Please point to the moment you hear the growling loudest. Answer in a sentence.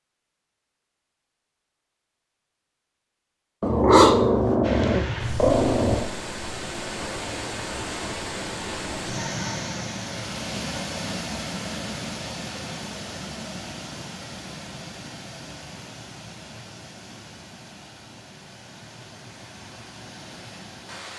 The loudest moment of the growling is at 4 seconds.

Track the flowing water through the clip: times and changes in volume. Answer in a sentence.
The flowing water can be heard from 4.6 to 21.1 s, getting quieter.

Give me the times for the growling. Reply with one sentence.
You can hear the growling from 3.6 to 6.0 s.